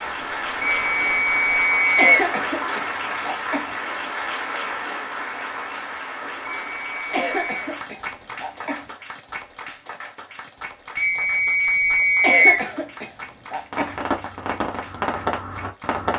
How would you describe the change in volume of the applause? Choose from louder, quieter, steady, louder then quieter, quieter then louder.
quieter.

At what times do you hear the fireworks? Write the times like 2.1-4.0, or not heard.
0.0-1.6, 13.7-16.1.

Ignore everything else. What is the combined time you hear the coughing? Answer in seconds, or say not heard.
5 s.